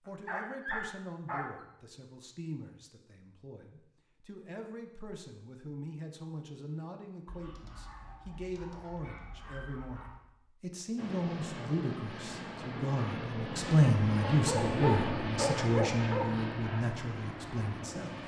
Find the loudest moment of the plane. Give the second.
15 s.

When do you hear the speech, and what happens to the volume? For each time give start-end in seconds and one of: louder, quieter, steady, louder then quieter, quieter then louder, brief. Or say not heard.
0.0-18.2 louder.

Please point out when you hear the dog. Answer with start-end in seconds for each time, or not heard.
0.1-1.6, 7.2-10.2, 14.2-16.2.